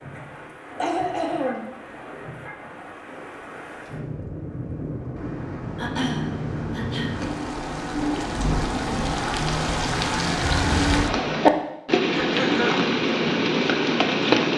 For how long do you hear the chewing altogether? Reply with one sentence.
The chewing can't be heard in this clip.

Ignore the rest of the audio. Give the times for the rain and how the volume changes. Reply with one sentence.
You can hear the rain from 0.0 to 14.5 s, getting louder.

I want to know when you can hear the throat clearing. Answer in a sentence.
You can hear the throat clearing from 0.8 to 1.8 s, from 5.8 to 7.3 s and from 12.1 to 12.8 s.